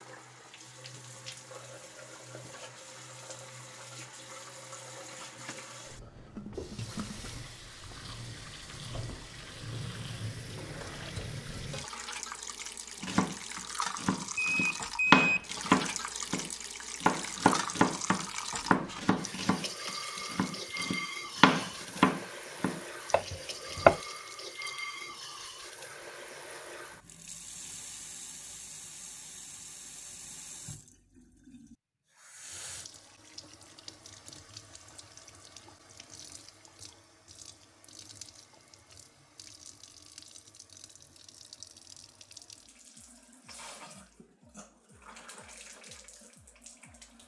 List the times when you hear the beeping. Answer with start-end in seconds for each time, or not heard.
14.4-15.4.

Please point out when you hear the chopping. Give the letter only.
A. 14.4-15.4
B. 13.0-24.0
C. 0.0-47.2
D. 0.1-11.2
B.